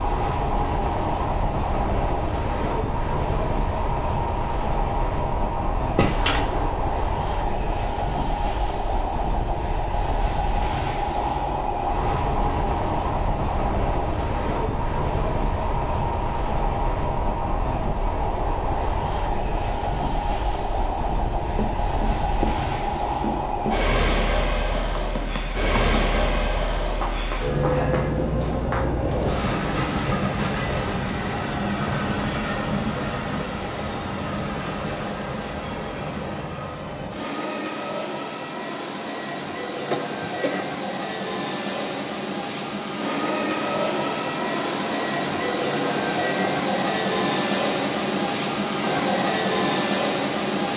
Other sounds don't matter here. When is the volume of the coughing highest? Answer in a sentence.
The volume of the coughing peaks at 6 seconds.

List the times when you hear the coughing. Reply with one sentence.
The coughing can be heard from 6.0 to 6.7 s and from 39.9 to 40.8 s.